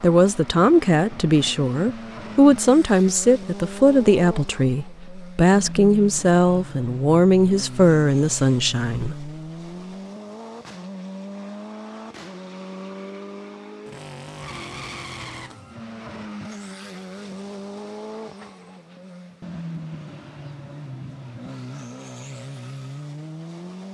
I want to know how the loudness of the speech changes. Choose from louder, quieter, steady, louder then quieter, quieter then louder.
steady.